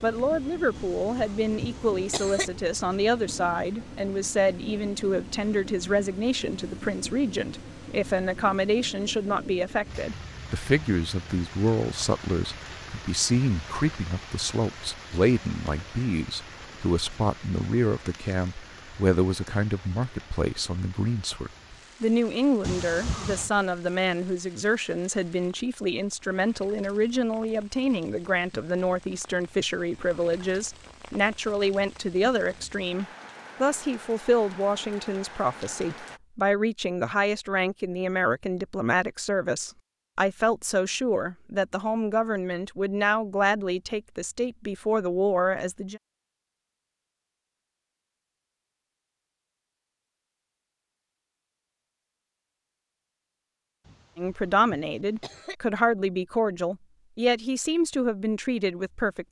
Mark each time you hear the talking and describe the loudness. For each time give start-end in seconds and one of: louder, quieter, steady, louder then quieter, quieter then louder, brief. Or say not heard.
0.0-46.0 steady
54.1-59.2 steady.